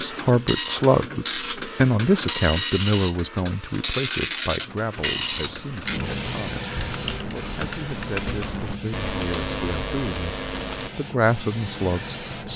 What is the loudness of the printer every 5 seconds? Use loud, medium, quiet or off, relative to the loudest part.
loud, loud, medium.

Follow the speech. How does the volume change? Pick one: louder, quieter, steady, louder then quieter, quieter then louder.
quieter then louder.